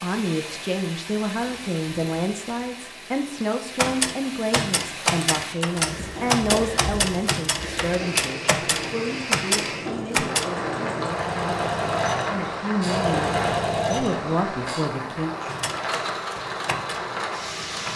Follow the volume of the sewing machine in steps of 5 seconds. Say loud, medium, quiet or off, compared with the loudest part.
off, medium, loud, medium.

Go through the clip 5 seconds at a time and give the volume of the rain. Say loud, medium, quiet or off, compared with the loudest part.
medium, loud, loud, loud.